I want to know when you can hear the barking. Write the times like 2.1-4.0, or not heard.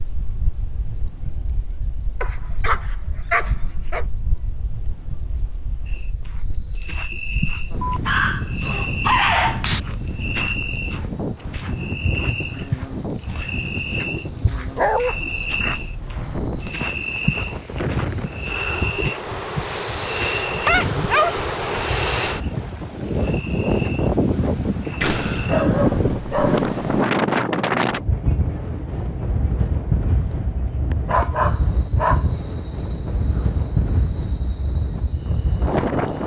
2.2-4.0, 7.8-9.8, 14.8-15.2, 20.4-21.4, 25.0-27.0, 31.1-32.2.